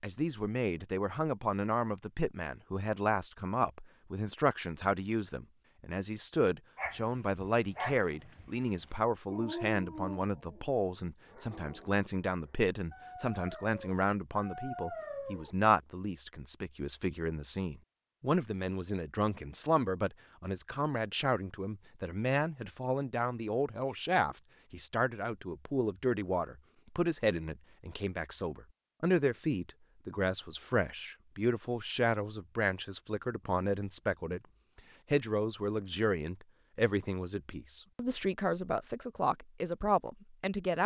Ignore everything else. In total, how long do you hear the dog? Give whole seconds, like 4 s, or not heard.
9 s.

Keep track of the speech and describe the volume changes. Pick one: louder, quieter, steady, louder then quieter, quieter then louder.
steady.